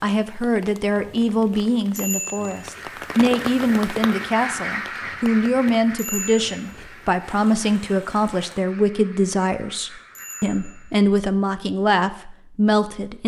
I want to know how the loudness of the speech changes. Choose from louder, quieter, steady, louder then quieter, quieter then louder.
steady.